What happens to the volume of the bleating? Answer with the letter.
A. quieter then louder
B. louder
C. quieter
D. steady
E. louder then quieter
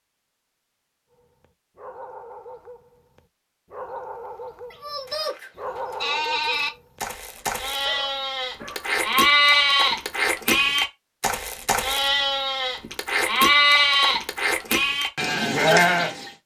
B.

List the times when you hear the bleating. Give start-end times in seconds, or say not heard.
4.7-16.3.